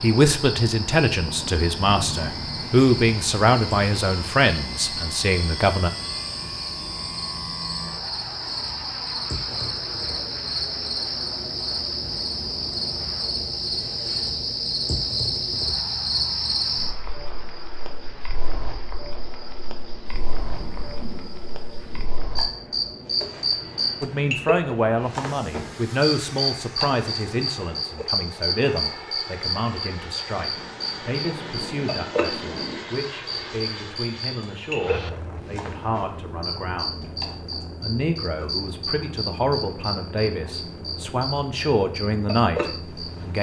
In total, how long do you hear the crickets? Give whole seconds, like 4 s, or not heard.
43 s.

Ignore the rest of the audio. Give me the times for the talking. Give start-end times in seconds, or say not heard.
0.0-5.9, 24.0-43.3.